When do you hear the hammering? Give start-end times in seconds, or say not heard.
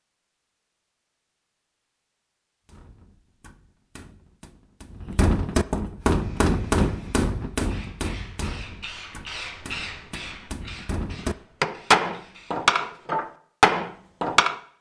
2.6-14.6.